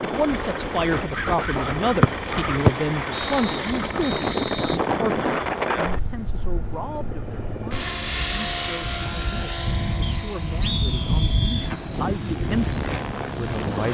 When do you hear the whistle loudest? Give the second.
3 s.